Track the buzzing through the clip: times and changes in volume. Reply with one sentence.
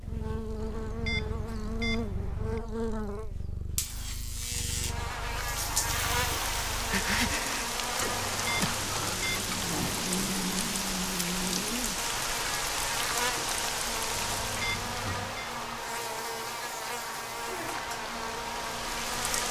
The buzzing can be heard from 0.0 to 19.4 s, at a steady volume.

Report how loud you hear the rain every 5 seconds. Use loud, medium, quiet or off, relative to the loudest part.
off, loud, loud, medium.